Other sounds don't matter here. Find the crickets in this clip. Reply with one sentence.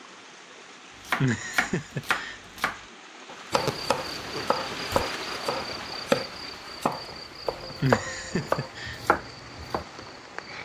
The crickets can be heard from 3.5 to 10.6 s.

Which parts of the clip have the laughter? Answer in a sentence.
You can hear the laughter from 1.1 to 2.4 s and from 7.8 to 9.0 s.